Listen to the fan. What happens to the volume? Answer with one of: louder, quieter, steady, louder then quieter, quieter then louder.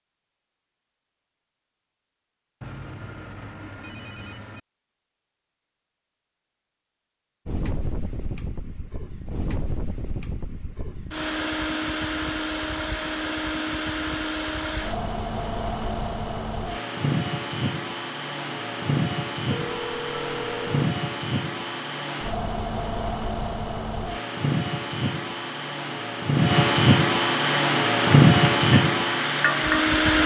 louder.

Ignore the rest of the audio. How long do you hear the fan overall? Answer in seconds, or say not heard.
23 s.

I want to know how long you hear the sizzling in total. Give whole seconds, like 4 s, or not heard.
3 s.